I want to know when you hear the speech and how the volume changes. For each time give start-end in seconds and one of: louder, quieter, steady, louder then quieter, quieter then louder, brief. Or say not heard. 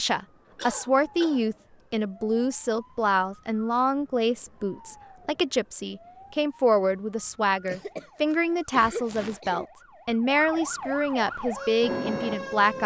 0.0-12.8 steady.